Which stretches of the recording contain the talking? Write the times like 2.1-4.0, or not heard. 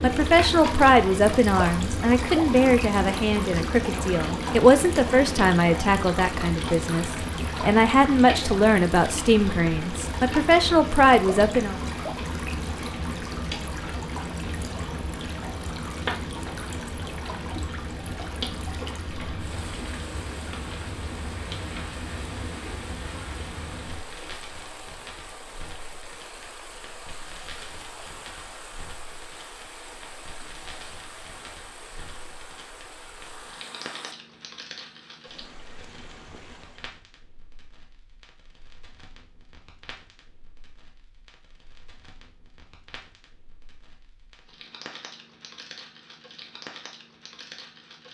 0.0-11.8.